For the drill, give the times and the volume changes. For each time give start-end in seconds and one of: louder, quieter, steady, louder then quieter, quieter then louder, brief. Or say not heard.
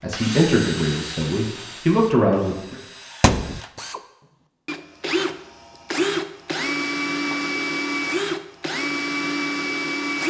0.1-10.2 quieter then louder.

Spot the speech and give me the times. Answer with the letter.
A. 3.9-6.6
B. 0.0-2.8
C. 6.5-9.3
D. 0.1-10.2
B.